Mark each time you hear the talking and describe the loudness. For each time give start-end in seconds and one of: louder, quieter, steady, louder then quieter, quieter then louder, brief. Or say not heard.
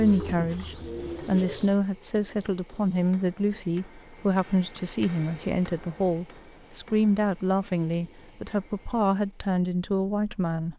0.0-10.7 steady.